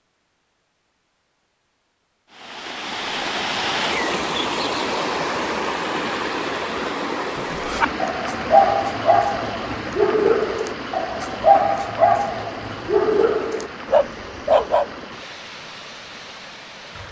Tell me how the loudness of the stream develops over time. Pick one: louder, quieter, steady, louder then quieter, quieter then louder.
quieter.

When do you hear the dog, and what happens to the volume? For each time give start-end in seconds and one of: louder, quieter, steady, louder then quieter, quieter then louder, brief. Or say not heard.
7.5-14.9 steady.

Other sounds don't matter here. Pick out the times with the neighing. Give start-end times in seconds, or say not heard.
not heard.